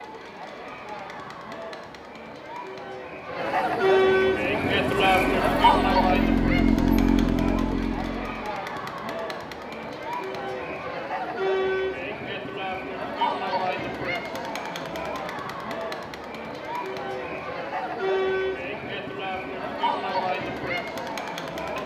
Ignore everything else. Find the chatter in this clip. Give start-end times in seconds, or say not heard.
0.0-21.8.